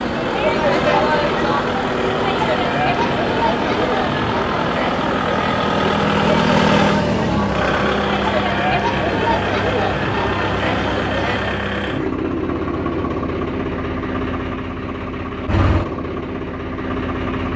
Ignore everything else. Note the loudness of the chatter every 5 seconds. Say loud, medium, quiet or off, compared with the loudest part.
loud, loud, loud, off.